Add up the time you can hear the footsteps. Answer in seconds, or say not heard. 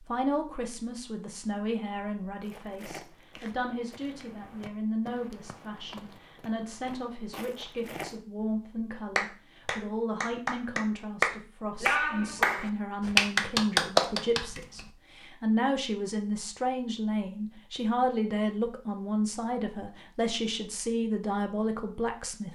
6 s.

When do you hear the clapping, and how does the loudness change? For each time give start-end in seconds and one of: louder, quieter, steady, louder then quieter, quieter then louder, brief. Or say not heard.
9.2-14.8 louder.